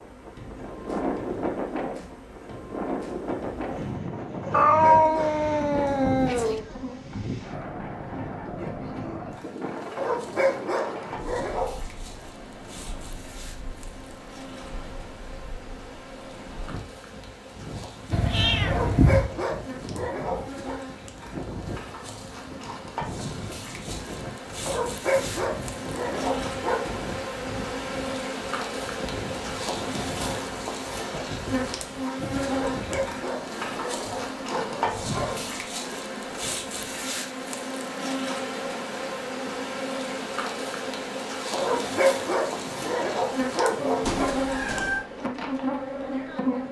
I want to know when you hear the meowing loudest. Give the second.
5 s.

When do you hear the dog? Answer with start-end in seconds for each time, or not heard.
4.4-6.0, 9.9-11.8, 18.6-20.8, 24.6-26.8, 32.5-35.4, 41.5-44.3.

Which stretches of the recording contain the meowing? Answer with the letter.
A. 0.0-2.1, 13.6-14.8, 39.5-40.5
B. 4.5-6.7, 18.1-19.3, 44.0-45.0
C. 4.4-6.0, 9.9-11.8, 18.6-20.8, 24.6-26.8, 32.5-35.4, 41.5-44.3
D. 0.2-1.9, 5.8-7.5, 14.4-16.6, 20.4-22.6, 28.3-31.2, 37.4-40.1
B.